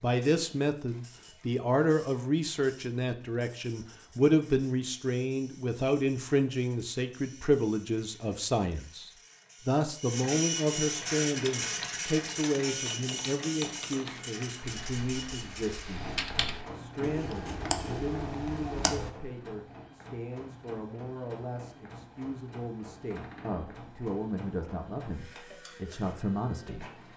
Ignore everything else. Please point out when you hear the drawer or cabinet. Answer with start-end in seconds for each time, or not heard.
23.1-23.9.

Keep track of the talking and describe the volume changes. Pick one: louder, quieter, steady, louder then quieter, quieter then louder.
quieter.